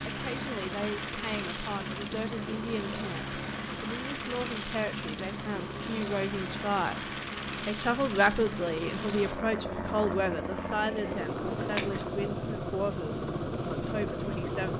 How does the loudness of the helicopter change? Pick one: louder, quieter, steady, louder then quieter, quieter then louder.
steady.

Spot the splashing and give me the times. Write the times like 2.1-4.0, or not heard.
11.6-12.2.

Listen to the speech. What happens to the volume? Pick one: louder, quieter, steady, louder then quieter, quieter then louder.
louder then quieter.